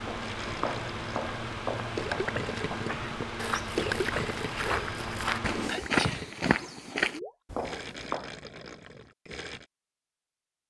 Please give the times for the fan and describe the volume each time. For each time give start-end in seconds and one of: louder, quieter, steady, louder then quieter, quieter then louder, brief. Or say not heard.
0.0-5.8 steady.